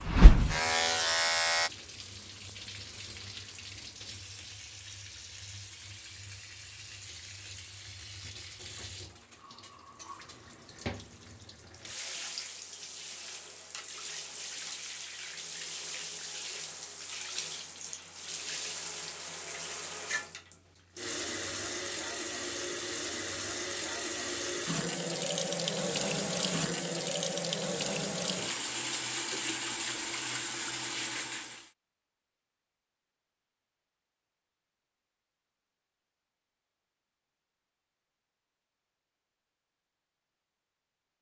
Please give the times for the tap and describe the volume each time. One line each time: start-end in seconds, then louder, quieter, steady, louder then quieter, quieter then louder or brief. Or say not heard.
0.0-31.7 louder.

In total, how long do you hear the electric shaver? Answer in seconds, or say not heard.
2 s.